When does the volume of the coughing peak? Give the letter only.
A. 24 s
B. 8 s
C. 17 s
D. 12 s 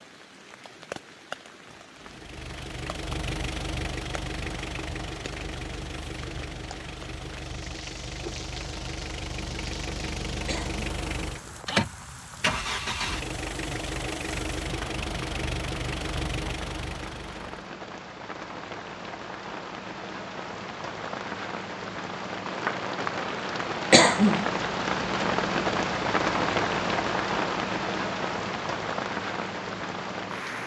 A.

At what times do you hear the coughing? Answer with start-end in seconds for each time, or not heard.
10.4-10.8, 23.9-24.4.